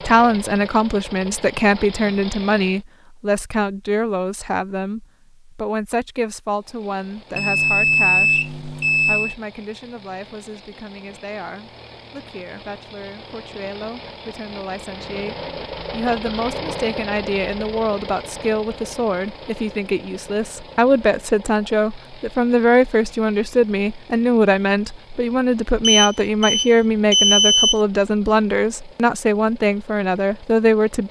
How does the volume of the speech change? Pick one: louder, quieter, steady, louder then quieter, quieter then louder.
quieter then louder.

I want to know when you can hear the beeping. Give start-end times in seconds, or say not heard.
7.3-9.3, 25.8-27.8.